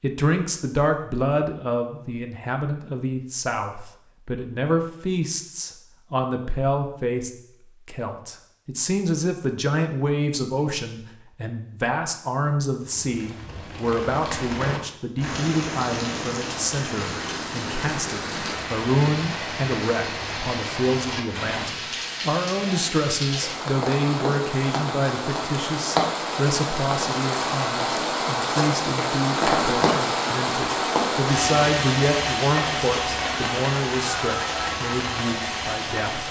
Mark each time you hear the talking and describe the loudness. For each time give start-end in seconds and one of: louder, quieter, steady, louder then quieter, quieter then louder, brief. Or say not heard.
0.0-36.2 steady.